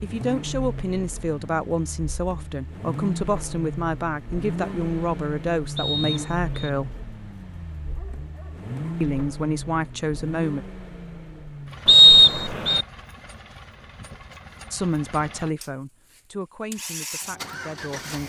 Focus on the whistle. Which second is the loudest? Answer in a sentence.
The loudest moment of the whistle is at 12 seconds.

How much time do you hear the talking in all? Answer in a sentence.
You can hear the talking for 12 seconds altogether.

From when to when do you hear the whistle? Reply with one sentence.
You can hear the whistle from 5.8 to 6.7 s and from 11.8 to 12.8 s.